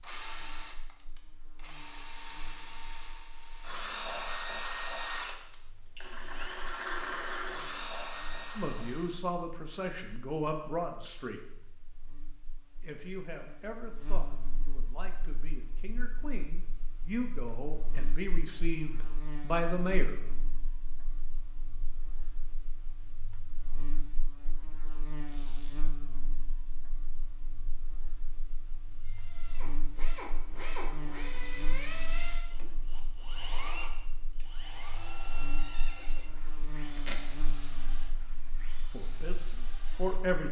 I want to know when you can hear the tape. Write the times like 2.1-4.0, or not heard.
36.6-37.4.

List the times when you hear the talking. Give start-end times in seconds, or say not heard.
8.6-11.4, 12.8-20.1, 38.9-40.4.